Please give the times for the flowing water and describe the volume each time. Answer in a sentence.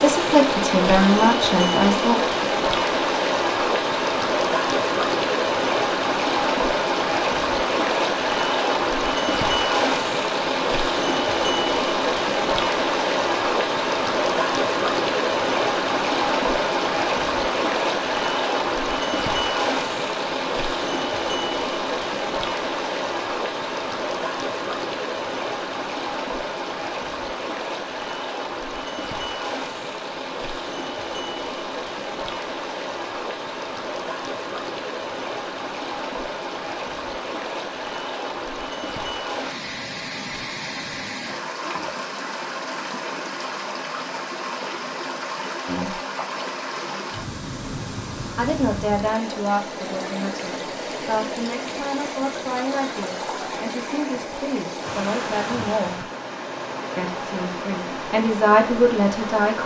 The flowing water can be heard from 0.0 to 59.6 s, getting quieter.